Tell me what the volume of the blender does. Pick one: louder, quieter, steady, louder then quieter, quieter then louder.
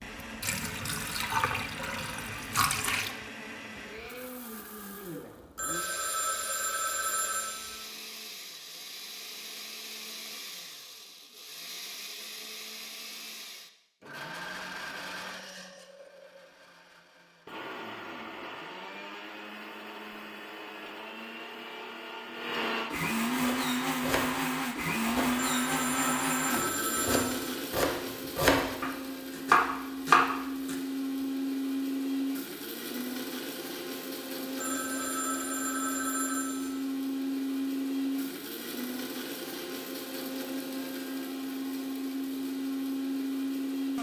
louder.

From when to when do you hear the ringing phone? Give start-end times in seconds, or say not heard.
5.5-7.8, 25.4-27.6, 34.5-36.8.